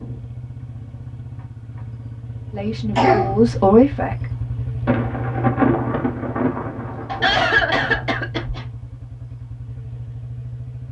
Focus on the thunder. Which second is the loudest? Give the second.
6 s.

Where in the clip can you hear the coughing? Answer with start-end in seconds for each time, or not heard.
3.0-3.6, 7.0-8.7.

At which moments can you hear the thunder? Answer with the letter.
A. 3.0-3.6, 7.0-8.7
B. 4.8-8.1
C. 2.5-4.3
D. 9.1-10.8
B.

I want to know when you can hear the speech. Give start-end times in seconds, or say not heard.
2.5-4.3.